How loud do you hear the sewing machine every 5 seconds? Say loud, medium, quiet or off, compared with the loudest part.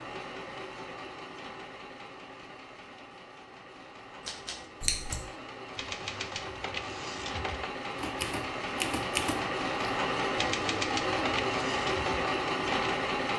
quiet, medium, loud.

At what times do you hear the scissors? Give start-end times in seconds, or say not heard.
4.8-5.2.